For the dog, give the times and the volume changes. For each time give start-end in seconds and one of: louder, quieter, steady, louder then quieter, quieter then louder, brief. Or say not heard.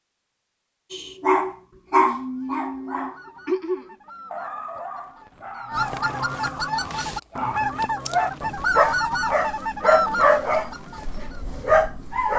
0.9-12.3 quieter then louder.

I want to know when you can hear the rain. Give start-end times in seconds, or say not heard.
not heard.